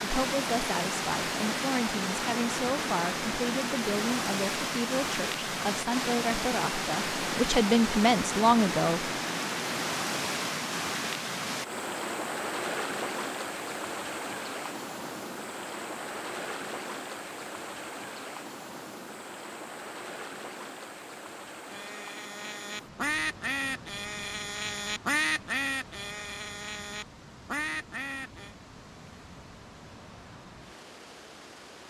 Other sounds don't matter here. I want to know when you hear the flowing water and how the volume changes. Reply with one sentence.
You can hear the flowing water from 0.0 to 31.8 s, getting quieter.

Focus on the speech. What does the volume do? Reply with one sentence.
The volume of the speech goes up.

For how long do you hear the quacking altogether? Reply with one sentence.
The quacking can be heard for 7 seconds in total.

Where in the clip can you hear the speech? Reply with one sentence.
The speech can be heard from 0.0 to 9.1 s.